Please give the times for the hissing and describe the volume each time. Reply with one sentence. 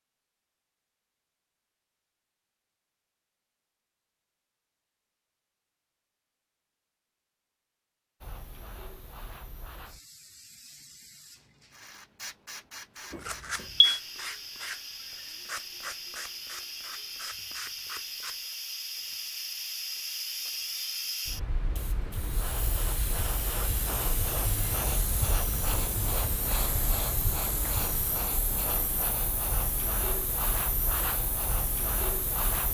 You can hear the hissing from 8.2 to 32.6 s, getting louder.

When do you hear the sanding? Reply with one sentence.
The sanding can be heard from 13.0 to 18.4 s.